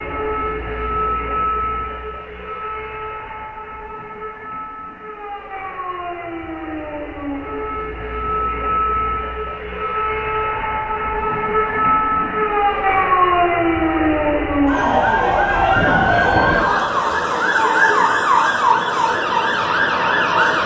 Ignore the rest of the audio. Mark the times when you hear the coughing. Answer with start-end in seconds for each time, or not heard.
not heard.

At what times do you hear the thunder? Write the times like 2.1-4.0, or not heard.
15.7-17.2.